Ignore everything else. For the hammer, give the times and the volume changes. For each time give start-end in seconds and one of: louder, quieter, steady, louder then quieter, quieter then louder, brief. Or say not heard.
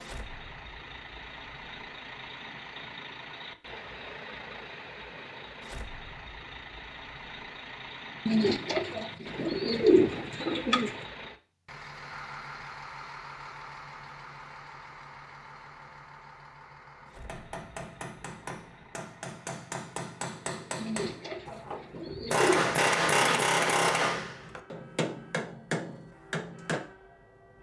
17.2-26.8 louder then quieter.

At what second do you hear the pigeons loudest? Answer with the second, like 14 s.
10 s.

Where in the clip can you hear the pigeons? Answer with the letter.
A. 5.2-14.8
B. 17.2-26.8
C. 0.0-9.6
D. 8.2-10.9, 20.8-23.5
D.